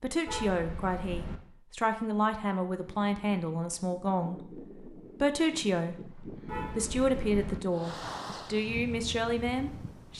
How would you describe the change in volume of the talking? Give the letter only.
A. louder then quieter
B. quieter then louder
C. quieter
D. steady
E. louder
D.